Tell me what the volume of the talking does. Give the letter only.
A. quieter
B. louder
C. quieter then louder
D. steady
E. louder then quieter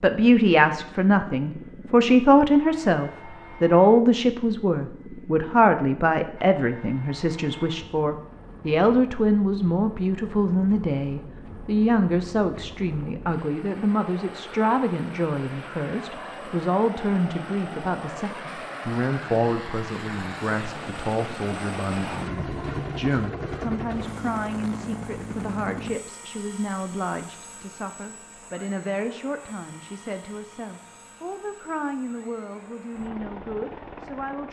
A.